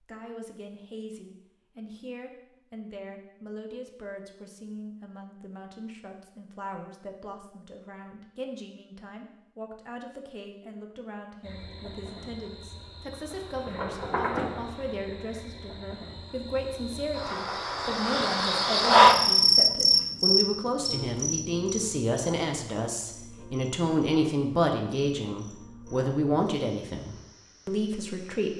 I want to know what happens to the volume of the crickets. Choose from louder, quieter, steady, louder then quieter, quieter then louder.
louder then quieter.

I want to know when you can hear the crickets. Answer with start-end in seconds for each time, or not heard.
11.4-28.5.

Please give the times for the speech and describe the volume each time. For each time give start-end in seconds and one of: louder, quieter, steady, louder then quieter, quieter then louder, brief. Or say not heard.
0.0-28.5 louder.